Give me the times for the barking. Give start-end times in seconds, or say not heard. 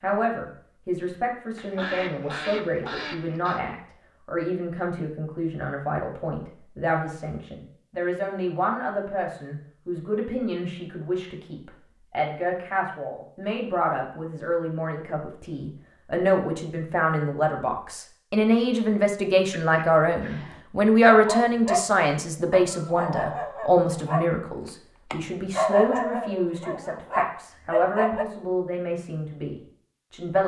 21.1-28.2.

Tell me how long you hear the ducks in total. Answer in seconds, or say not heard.
3 s.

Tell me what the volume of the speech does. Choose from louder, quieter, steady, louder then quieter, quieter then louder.
louder then quieter.